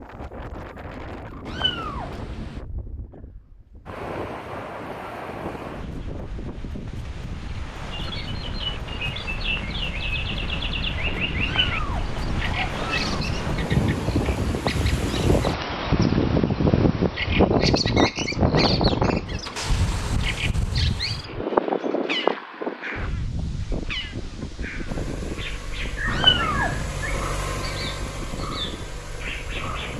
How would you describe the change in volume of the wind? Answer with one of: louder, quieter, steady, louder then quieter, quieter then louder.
louder then quieter.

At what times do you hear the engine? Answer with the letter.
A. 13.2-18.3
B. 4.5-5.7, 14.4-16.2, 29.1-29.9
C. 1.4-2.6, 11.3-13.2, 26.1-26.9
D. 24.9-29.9
D.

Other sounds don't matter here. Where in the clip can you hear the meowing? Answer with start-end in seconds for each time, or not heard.
1.4-2.6, 11.3-13.2, 26.1-26.9.